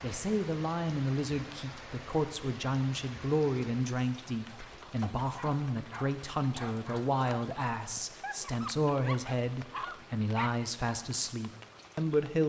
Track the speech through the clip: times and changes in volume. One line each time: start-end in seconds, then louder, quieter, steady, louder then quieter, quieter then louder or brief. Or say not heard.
0.0-12.4 steady.